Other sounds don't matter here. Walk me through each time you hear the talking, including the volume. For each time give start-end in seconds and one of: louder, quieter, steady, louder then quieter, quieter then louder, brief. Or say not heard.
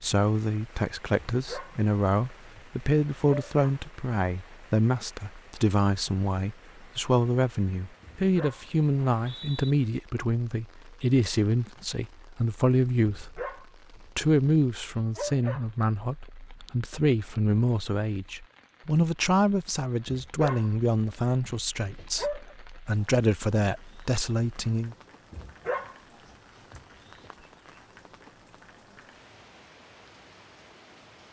0.0-24.9 steady.